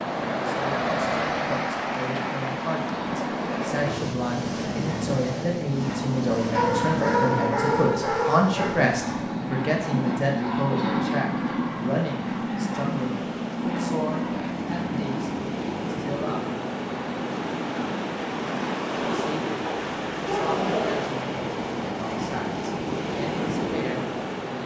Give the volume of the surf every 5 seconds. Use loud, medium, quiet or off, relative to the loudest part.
loud, medium, medium, loud, loud.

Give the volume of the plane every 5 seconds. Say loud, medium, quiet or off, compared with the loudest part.
medium, loud, loud, medium, off.